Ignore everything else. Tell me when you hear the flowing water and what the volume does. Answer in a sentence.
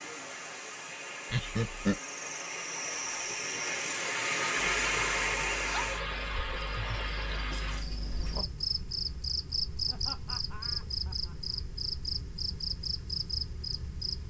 You can hear the flowing water from 0.0 to 7.8 s, getting louder then quieter.